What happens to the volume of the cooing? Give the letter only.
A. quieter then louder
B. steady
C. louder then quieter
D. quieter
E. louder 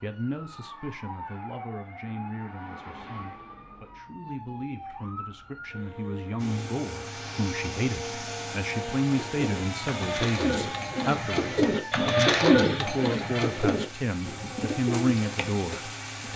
C.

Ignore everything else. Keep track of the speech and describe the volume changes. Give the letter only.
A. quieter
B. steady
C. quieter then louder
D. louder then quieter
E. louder
E.